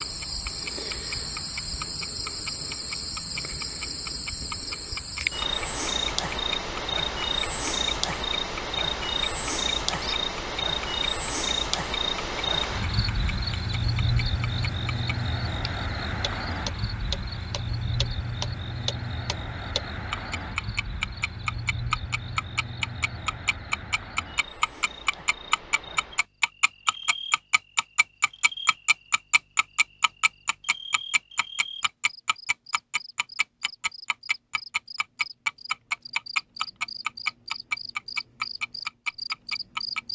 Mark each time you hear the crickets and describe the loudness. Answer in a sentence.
You can hear the crickets from 0.0 to 40.1 s, getting quieter.